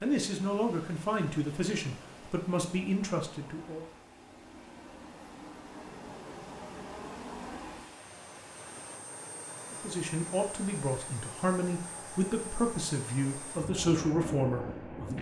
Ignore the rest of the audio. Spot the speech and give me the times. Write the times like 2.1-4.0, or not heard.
0.0-3.9, 9.7-15.1.